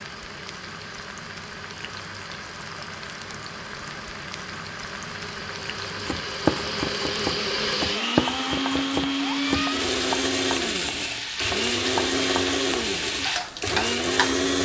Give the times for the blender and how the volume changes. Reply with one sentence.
You can hear the blender from 0.0 to 14.6 s, getting louder.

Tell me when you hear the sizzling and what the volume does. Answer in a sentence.
The sizzling can be heard from 0.0 to 14.4 s, getting louder.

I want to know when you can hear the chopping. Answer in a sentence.
The chopping can be heard from 6.0 to 9.7 s.